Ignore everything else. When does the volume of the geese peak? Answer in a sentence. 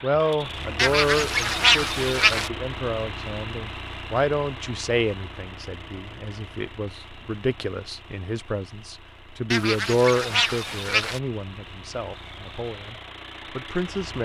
The loudest moment of the geese is at 2 seconds.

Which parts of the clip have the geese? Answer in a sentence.
You can hear the geese from 0.8 to 2.5 s and from 9.5 to 11.2 s.